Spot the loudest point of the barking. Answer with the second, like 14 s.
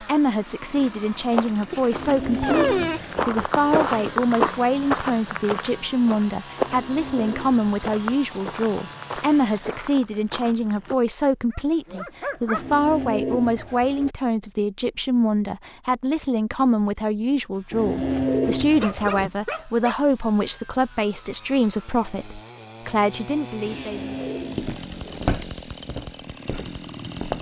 3 s.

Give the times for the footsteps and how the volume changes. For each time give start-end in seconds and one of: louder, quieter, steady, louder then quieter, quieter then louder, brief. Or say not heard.
1.1-10.9 louder then quieter
24.4-27.3 brief.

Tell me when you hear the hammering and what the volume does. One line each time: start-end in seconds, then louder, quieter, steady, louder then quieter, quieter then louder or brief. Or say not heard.
not heard.